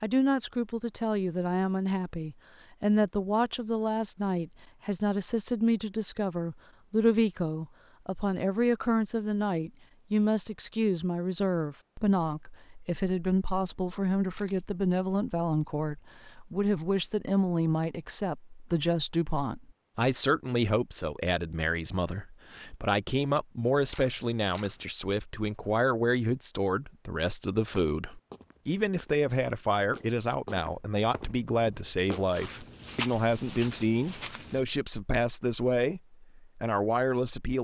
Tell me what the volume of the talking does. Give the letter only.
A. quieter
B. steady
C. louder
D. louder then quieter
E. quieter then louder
B.